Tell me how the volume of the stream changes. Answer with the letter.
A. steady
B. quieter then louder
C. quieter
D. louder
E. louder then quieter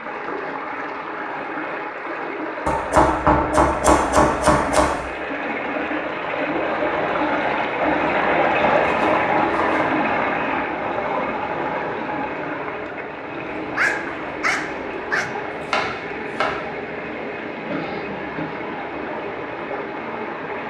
E.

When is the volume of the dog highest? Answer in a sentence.
The volume of the dog peaks at 14 seconds.